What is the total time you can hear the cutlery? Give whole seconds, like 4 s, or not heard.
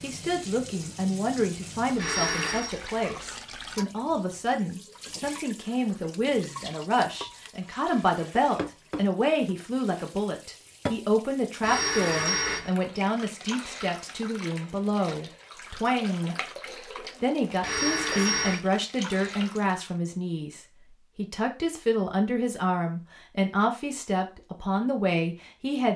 not heard.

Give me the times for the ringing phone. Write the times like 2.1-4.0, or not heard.
1.9-2.8, 11.6-12.7, 17.6-18.6.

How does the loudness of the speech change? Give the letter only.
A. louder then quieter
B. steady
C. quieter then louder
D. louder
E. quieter
B.